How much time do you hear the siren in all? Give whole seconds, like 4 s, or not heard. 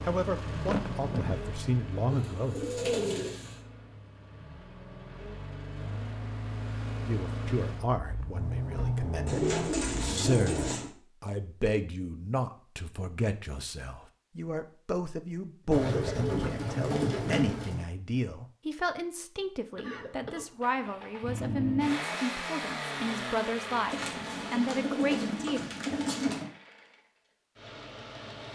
not heard.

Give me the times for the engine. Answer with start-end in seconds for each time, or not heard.
0.0-10.9, 20.6-28.5.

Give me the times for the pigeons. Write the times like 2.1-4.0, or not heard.
2.1-3.6, 9.2-10.9, 15.7-17.9, 23.9-26.4.